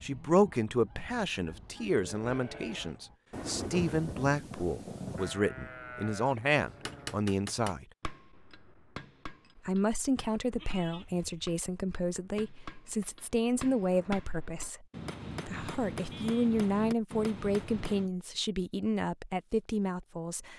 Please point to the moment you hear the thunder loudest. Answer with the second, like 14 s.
4 s.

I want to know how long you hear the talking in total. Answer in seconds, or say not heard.
18 s.